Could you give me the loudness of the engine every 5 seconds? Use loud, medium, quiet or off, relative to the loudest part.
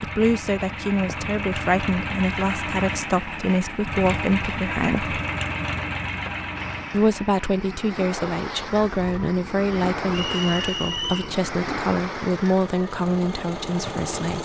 loud, loud, medium.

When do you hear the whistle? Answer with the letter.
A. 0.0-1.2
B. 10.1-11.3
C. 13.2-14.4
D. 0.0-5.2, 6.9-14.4
B.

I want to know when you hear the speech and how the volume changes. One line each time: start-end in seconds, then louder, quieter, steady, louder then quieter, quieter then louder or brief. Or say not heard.
0.0-5.2 steady
6.9-14.4 steady.